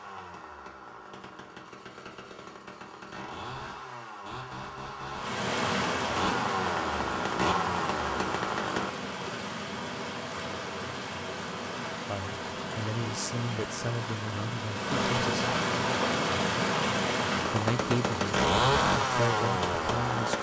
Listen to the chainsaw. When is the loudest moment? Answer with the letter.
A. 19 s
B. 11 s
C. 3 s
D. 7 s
A.